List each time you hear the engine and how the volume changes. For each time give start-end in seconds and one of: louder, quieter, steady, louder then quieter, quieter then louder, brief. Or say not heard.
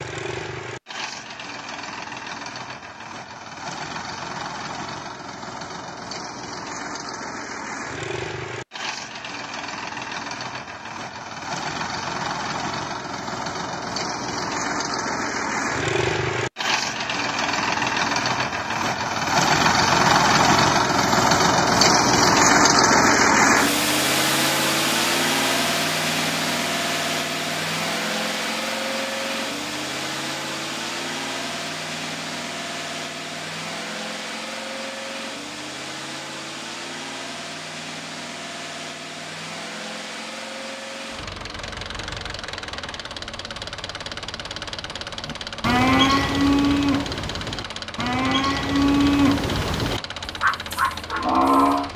0.0-51.9 louder then quieter.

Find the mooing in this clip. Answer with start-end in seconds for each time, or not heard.
45.2-51.9.